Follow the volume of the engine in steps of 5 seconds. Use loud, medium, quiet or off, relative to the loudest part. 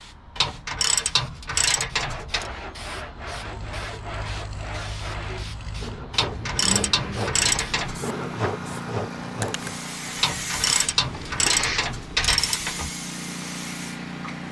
medium, loud, loud.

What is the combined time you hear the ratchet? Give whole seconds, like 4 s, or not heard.
7 s.